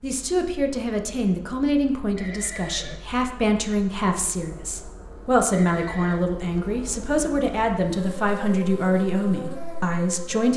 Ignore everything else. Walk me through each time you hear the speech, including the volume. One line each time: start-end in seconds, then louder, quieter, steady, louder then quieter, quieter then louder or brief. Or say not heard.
0.0-10.5 steady.